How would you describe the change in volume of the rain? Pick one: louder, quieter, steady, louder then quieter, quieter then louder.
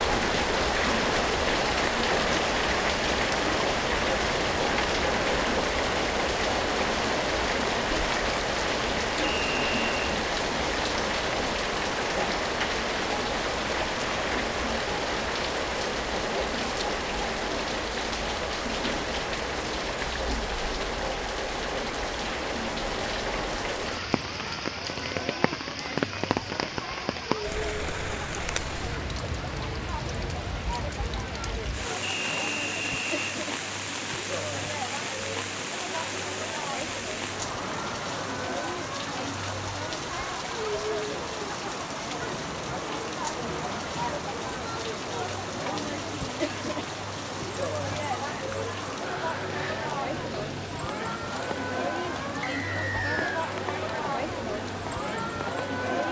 quieter.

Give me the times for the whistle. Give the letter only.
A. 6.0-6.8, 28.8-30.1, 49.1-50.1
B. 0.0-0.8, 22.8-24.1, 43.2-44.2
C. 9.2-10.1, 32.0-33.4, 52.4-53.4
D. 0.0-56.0
C.